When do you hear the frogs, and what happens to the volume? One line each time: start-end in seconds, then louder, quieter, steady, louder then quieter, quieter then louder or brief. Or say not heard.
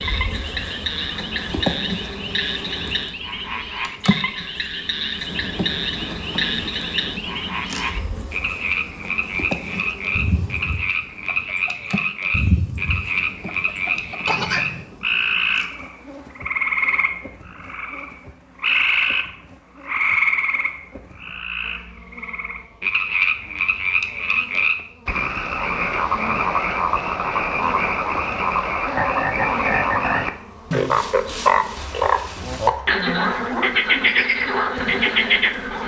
0.0-35.8 louder.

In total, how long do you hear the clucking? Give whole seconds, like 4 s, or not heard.
5 s.